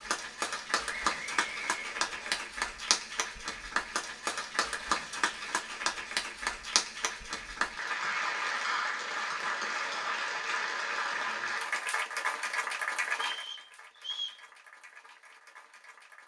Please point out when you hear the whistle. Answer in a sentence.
You can hear the whistle from 1.1 to 2.4 s and from 13.2 to 14.4 s.